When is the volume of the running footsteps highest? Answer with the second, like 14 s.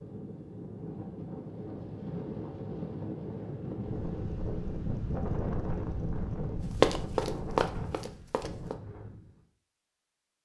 7 s.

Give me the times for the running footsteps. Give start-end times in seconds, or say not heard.
6.8-8.8.